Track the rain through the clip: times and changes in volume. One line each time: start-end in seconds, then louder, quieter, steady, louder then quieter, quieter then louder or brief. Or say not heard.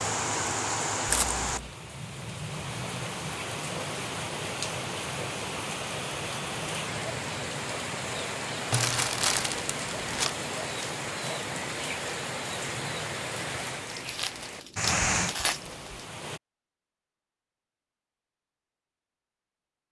0.0-16.4 steady.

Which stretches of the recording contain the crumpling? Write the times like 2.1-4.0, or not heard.
1.1-1.7, 8.7-10.3, 13.9-16.1.